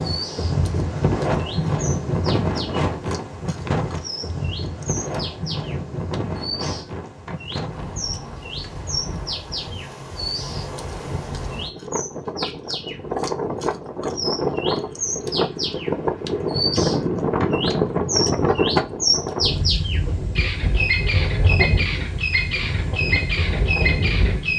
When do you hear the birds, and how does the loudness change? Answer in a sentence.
You can hear the birds from 0.0 to 24.5 s, getting louder.